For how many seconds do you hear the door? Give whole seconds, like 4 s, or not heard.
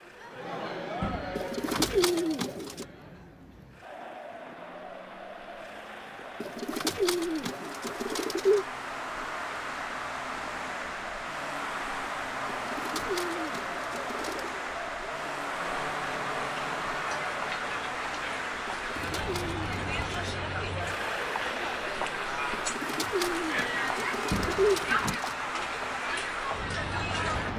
2 s.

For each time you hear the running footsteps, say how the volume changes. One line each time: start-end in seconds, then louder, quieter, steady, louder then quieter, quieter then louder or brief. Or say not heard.
not heard.